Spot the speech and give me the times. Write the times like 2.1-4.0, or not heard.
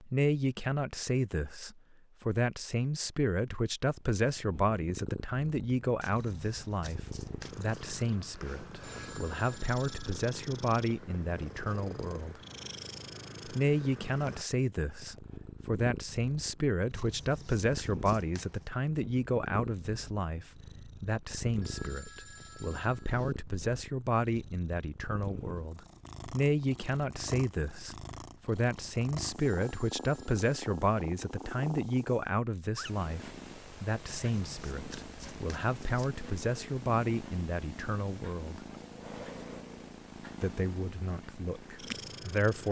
0.0-12.4, 13.4-38.6, 40.4-42.6.